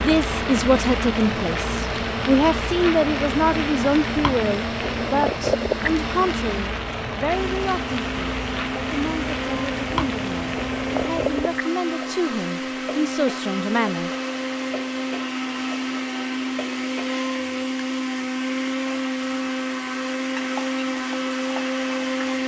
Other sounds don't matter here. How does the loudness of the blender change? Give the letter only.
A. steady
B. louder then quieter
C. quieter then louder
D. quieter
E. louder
E.